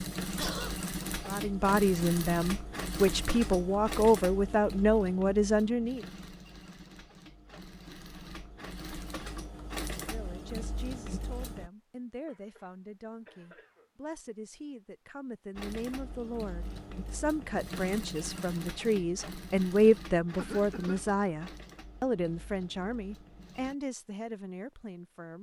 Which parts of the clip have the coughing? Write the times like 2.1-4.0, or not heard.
0.3-0.8, 12.2-13.9, 20.4-21.1.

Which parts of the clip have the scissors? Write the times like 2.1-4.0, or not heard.
not heard.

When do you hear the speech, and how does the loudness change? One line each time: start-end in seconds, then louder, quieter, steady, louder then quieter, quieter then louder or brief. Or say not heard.
1.2-6.0 steady
9.9-25.3 louder then quieter.